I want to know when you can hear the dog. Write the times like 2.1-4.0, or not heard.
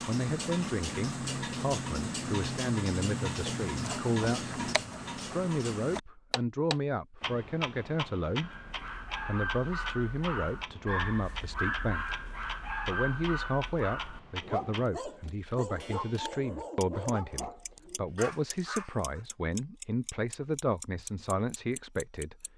8.3-19.2.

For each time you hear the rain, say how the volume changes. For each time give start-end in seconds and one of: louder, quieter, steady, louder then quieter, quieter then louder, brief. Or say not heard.
not heard.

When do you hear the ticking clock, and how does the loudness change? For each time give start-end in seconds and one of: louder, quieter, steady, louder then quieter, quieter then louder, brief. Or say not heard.
0.0-22.5 quieter.